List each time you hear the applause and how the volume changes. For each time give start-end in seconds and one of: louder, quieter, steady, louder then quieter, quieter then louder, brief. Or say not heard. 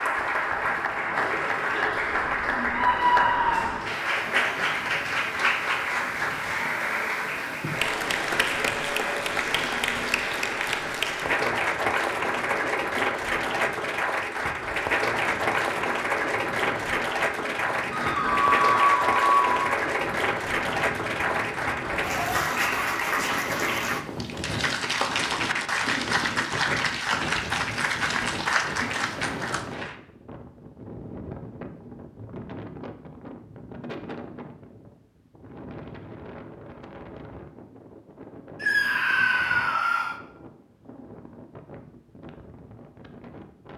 0.0-29.9 steady.